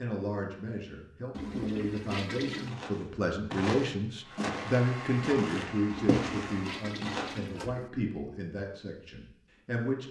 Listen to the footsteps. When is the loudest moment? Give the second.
6 s.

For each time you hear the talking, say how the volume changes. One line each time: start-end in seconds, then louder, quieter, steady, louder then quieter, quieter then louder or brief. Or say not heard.
0.0-10.0 louder then quieter.